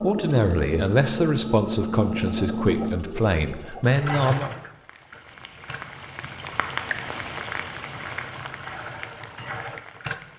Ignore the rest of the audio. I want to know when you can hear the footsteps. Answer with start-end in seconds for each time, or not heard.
not heard.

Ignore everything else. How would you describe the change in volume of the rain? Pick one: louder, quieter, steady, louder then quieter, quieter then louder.
louder then quieter.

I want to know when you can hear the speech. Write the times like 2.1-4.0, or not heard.
0.0-4.5.